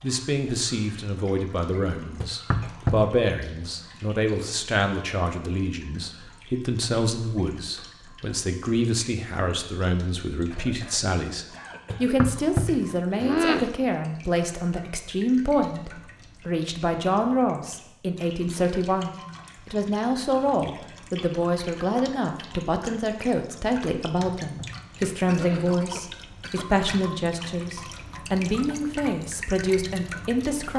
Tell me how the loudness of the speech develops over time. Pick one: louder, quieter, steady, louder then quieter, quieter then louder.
steady.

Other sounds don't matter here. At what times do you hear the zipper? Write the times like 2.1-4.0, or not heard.
not heard.